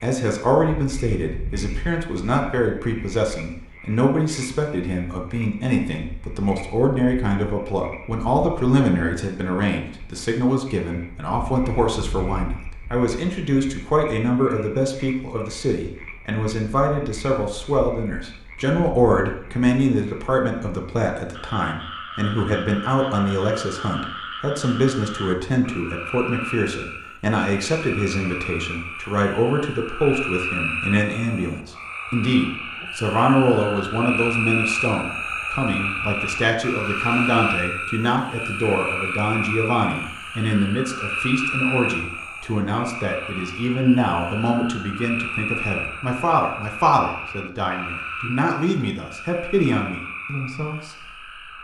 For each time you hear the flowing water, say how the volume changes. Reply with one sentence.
The flowing water can't be heard in this clip.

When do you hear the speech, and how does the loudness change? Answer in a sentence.
You can hear the speech from 0.0 to 51.3 s, at a steady volume.